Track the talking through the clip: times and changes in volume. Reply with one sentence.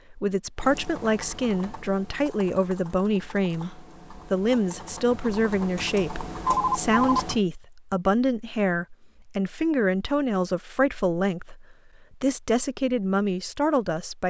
You can hear the talking from 0.1 to 14.2 s, at a steady volume.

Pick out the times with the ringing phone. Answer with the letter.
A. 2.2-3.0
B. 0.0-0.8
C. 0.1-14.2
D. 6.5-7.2
D.